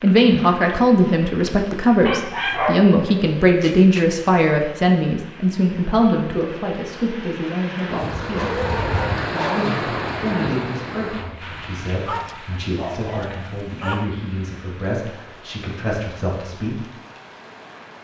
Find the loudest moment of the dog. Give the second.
3 s.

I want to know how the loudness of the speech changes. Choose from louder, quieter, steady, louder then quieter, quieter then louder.
quieter.